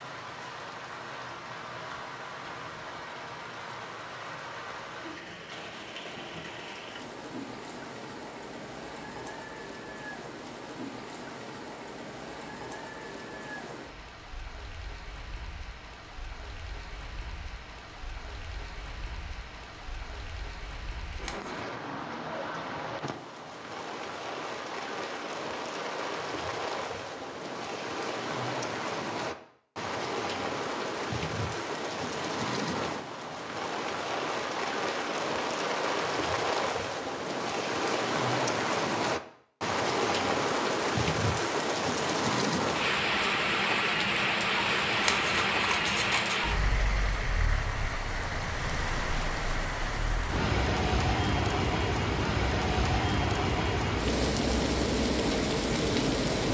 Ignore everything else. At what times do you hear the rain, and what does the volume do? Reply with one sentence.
The rain can be heard from 0.0 to 56.4 s, getting louder.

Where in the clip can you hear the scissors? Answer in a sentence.
The scissors can be heard from 21.1 to 21.6 s and from 44.9 to 46.4 s.